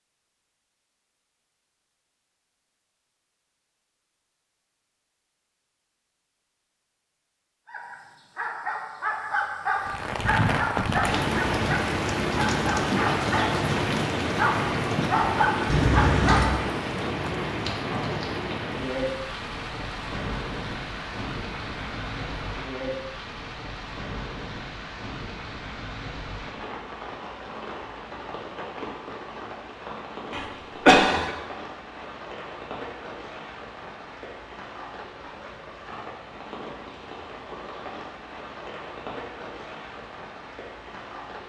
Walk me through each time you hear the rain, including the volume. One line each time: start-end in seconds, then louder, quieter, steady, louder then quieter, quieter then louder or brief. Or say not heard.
9.8-41.4 quieter.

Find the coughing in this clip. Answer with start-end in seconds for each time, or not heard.
30.3-31.3.